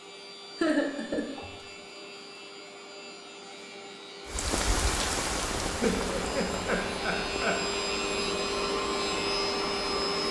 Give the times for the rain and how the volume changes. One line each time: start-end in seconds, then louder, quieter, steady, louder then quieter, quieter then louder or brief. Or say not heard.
4.2-10.2 quieter.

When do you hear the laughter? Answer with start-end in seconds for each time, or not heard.
0.6-1.5, 5.8-7.7.